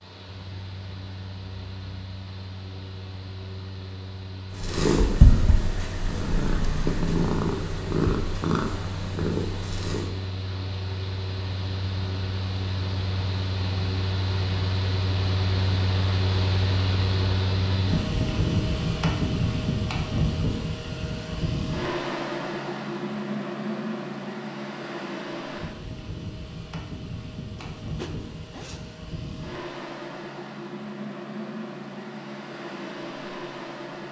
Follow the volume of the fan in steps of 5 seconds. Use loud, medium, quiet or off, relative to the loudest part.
quiet, quiet, medium, loud, loud, medium, medium.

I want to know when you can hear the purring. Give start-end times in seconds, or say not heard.
4.5-10.2.